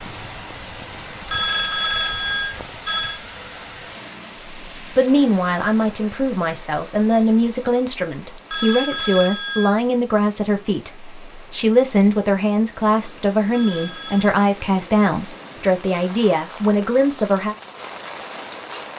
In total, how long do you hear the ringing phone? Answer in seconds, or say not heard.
4 s.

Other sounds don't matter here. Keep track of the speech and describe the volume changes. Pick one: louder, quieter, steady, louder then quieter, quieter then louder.
steady.